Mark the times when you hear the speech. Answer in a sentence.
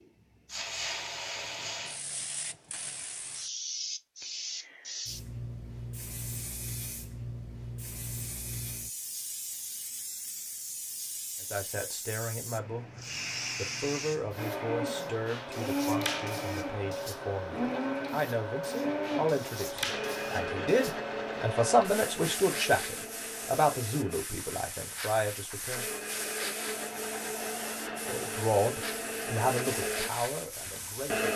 The speech can be heard from 11.4 to 25.9 s and from 28.1 to 31.3 s.